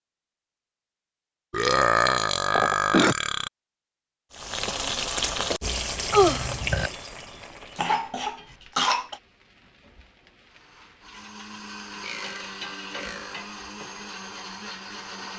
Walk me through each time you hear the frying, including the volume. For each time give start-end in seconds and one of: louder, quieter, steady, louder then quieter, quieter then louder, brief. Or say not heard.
4.3-15.3 quieter then louder.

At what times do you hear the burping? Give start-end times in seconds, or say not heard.
1.5-3.5, 6.1-6.9, 12.0-13.4.